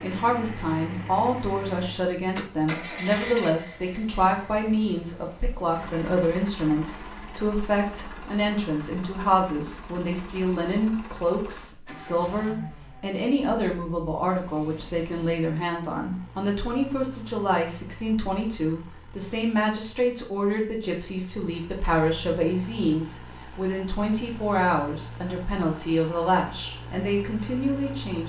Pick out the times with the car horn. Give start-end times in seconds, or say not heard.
not heard.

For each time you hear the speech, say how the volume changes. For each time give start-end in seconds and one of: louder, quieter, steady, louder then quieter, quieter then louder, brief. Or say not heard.
0.0-28.2 steady.